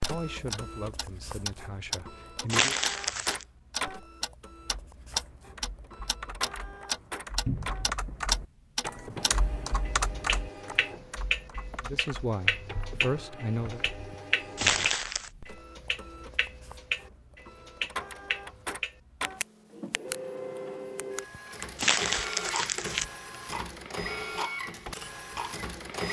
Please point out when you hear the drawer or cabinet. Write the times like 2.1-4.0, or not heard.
7.5-7.9.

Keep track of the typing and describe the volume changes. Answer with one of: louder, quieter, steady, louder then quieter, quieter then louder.
louder then quieter.